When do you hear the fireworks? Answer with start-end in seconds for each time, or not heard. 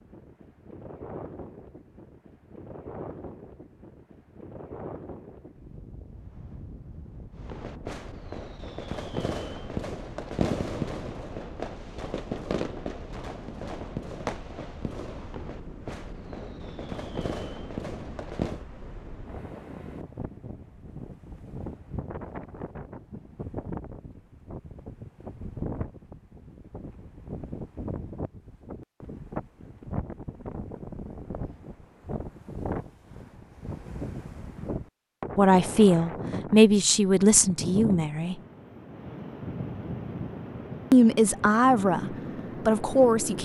7.4-18.6.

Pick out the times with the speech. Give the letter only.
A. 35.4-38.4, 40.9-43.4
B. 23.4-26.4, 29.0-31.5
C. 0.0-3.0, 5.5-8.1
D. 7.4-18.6
A.